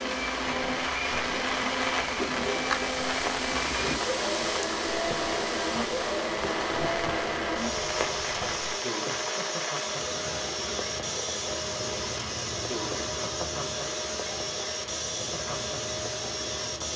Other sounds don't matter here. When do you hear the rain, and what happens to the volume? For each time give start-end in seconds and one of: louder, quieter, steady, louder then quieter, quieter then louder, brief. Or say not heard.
0.0-16.9 quieter.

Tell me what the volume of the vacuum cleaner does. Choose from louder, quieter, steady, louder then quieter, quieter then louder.
steady.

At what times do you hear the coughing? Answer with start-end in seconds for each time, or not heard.
not heard.